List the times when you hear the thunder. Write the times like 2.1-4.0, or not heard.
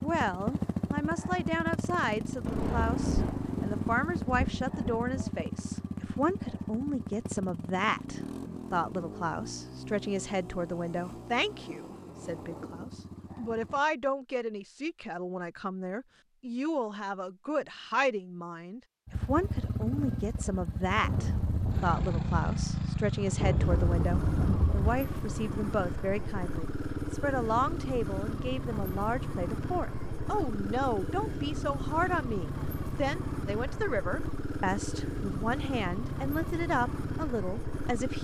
2.5-5.3, 21.0-24.9.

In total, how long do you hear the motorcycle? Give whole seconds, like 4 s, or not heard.
33 s.